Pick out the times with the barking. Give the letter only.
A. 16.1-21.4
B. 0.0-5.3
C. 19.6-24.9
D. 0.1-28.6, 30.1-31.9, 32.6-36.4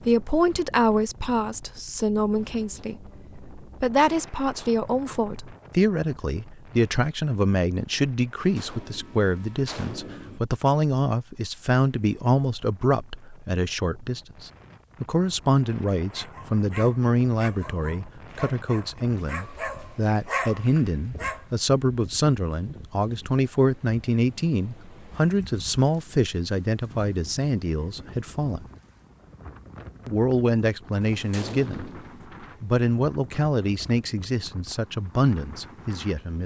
A.